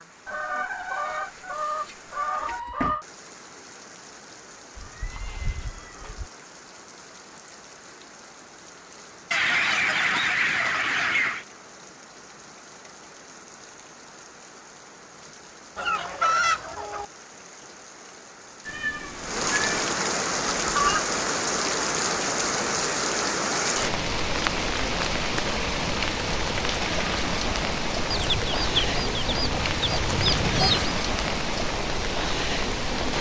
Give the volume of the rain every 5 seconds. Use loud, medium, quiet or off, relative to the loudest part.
quiet, quiet, quiet, medium, loud, loud, loud.